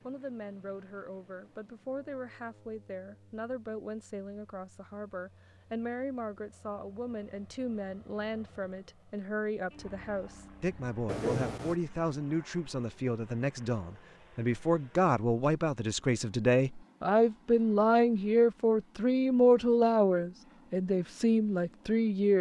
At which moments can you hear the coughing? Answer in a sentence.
The coughing can be heard from 11.1 to 11.8 s.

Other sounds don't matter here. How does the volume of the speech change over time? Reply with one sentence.
The loudness of the speech goes up.